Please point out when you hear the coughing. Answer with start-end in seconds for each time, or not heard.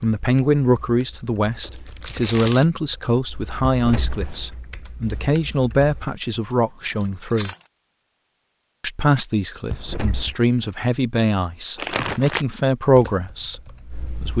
not heard.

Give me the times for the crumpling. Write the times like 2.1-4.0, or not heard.
1.6-2.6, 6.5-7.6, 11.8-12.4.